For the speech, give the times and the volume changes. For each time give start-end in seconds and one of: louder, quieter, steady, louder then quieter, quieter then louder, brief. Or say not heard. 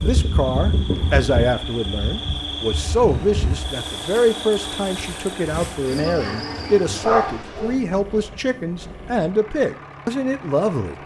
0.0-10.9 steady.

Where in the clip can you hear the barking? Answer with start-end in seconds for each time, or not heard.
7.0-7.8.